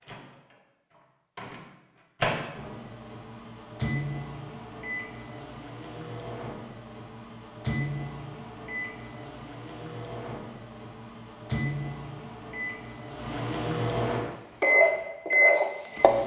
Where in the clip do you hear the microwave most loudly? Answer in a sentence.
The volume of the microwave peaks at 15 seconds.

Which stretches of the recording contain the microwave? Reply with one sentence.
You can hear the microwave from 0.1 to 16.2 s.